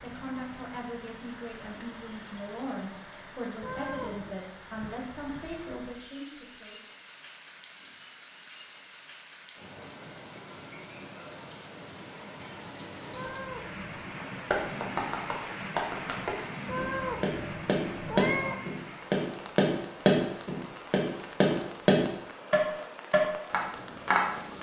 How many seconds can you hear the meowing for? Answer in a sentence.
The meowing can be heard for 4 seconds in total.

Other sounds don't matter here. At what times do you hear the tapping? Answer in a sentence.
You can hear the tapping from 14.3 to 24.5 s.